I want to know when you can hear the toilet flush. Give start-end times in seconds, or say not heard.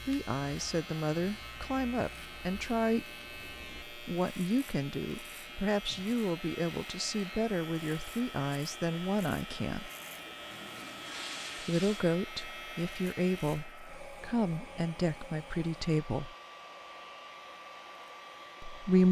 9.9-12.1.